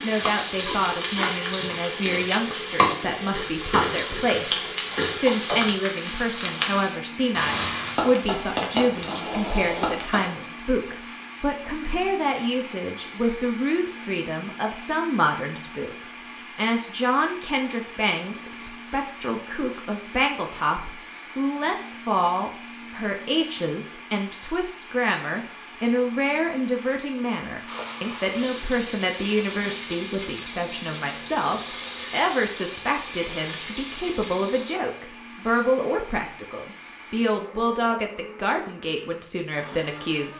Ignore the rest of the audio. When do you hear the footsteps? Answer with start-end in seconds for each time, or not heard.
not heard.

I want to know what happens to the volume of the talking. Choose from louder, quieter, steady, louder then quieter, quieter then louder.
steady.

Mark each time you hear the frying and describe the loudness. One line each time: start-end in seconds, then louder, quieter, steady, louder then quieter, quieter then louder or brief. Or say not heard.
0.0-10.3 steady
27.6-34.6 steady.